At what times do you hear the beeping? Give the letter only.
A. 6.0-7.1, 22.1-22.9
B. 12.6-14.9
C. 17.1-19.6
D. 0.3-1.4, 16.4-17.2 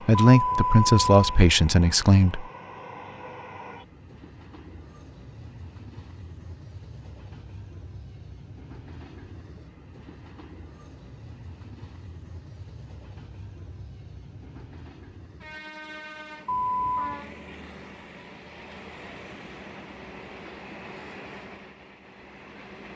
D.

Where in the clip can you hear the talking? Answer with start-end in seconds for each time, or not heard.
0.1-2.5.